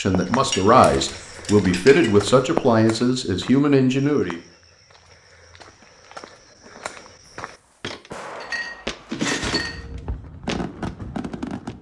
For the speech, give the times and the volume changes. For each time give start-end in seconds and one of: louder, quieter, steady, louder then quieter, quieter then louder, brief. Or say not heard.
0.0-4.3 steady.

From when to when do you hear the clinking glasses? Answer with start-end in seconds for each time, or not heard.
0.4-2.1, 8.4-9.8.